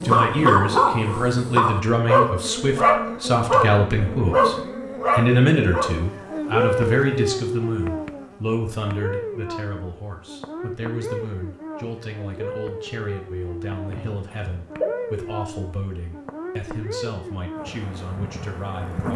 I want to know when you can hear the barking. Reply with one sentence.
The barking can be heard from 0.0 to 6.0 s.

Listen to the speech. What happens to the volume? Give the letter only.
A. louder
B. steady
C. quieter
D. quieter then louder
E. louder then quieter
C.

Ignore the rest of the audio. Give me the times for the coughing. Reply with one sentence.
The coughing can be heard from 13.8 to 14.9 s.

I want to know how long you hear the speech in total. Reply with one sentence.
The speech can be heard for 19 seconds in total.